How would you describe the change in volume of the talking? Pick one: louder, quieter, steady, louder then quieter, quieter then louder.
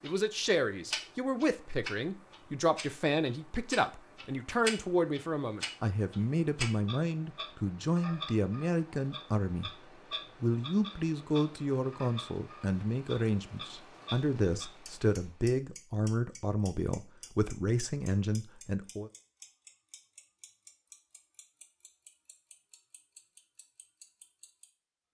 steady.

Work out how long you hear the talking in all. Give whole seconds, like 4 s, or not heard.
19 s.